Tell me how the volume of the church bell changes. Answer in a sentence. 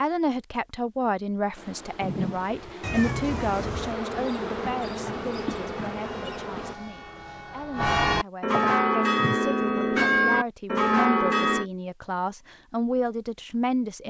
The loudness of the church bell goes up.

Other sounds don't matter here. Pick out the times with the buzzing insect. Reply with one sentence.
The buzzing insect can be heard from 1.6 to 6.8 s.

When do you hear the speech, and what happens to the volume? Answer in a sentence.
The speech can be heard from 0.0 to 14.0 s, getting quieter then louder.